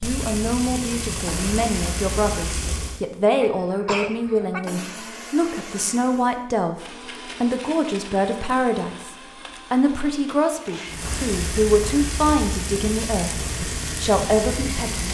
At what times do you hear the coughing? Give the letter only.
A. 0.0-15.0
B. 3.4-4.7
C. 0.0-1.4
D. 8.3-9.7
B.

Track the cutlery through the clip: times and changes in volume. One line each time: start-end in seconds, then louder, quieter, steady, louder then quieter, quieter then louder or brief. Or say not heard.
not heard.